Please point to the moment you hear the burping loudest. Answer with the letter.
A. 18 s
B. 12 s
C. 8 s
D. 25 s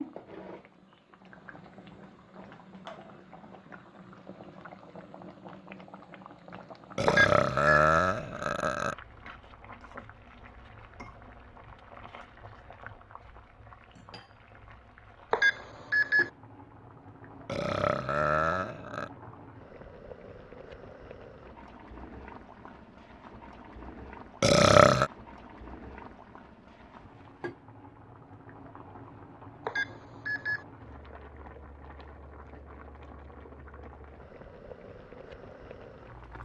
D.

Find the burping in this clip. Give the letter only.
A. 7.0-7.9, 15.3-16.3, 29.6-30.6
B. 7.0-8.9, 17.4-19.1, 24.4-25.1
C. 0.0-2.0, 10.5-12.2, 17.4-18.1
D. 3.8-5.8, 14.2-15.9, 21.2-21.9
B.